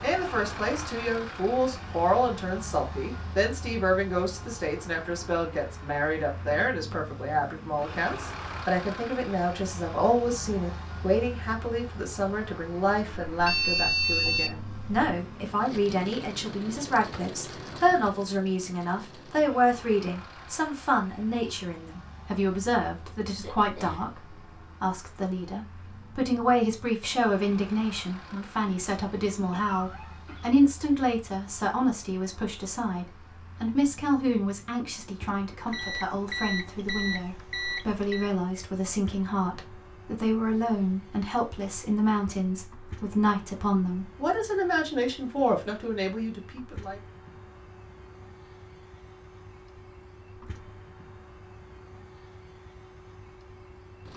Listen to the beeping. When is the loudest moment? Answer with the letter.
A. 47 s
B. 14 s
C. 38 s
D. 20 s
B.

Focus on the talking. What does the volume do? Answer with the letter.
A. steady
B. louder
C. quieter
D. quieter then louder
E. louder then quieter
A.